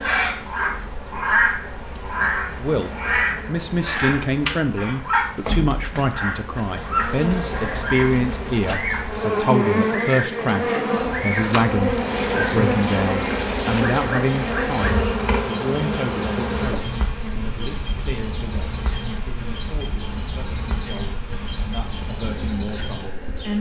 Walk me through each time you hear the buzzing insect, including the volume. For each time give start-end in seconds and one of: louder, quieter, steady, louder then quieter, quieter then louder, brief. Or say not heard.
0.0-23.5 louder then quieter.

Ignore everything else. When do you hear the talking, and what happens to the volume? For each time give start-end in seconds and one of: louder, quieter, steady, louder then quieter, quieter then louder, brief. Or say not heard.
2.5-23.5 quieter.